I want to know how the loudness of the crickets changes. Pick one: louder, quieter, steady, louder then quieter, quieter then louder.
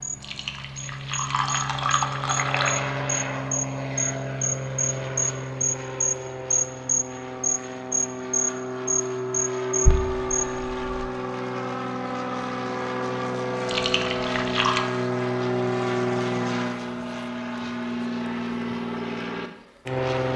louder.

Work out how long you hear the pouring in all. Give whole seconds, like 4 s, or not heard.
5 s.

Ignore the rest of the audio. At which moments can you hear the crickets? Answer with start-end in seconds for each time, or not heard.
0.0-10.5.